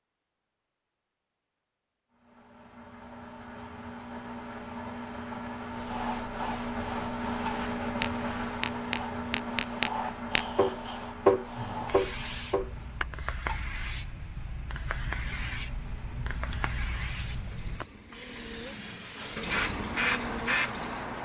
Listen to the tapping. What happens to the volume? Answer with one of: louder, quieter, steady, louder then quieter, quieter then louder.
louder then quieter.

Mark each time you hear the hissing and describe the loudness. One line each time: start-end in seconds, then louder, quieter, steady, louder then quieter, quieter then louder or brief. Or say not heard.
5.7-21.1 louder.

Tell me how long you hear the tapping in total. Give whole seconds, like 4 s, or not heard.
6 s.